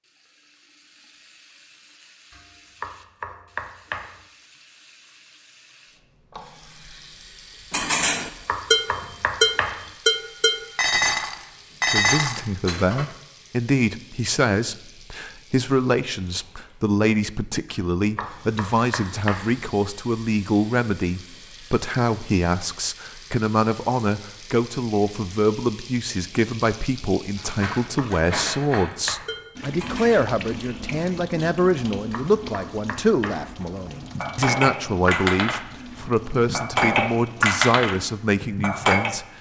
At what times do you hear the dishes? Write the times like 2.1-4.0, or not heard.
7.7-13.1, 27.4-30.2, 33.9-39.1.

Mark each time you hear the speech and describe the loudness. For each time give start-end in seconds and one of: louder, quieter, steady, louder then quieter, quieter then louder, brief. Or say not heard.
11.9-39.2 steady.